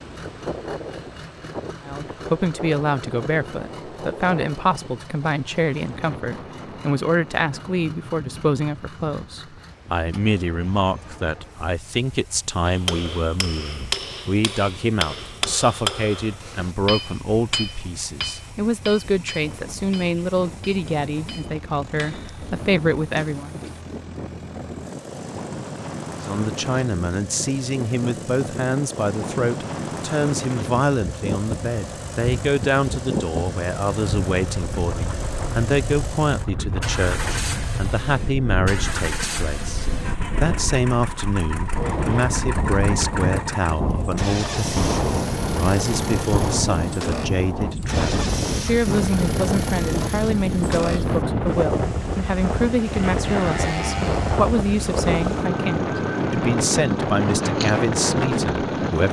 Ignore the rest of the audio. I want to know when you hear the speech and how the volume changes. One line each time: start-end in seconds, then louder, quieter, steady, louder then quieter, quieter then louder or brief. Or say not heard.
1.9-23.6 steady
26.2-59.0 steady.